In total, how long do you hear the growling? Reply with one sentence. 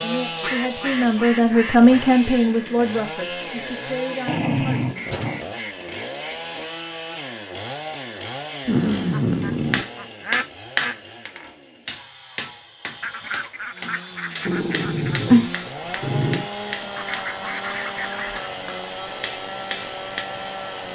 The growling can be heard for 4 seconds in total.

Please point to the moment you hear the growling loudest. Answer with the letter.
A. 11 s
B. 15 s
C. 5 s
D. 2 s
B.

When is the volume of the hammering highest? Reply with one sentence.
The loudest moment of the hammering is at 11 seconds.